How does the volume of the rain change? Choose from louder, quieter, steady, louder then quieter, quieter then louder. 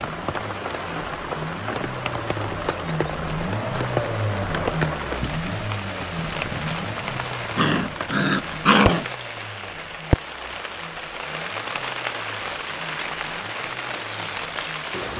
steady.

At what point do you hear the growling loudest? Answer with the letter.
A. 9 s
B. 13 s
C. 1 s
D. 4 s
A.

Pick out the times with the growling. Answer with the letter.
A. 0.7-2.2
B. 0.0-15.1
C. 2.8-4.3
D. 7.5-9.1
D.